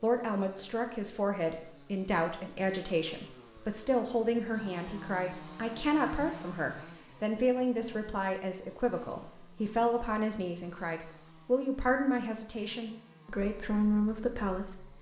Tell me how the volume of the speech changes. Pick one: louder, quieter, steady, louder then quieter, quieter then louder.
steady.